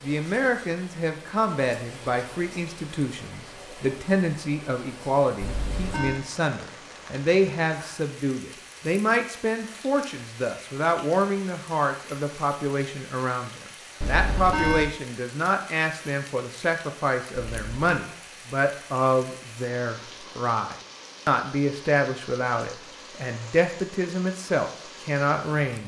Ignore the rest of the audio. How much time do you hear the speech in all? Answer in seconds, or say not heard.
26 s.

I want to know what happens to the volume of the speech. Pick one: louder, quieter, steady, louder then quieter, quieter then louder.
steady.